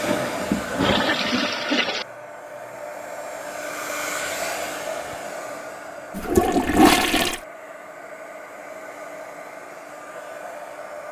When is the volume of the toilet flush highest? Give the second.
7 s.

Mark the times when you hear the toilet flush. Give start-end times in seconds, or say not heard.
0.0-2.0, 6.2-7.4.